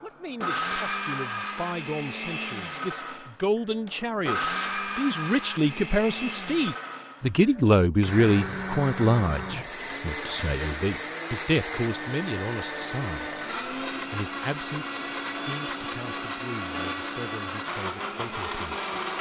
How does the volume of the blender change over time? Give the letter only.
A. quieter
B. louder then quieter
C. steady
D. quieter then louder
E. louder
C.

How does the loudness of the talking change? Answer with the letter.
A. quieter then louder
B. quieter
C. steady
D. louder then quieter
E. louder
D.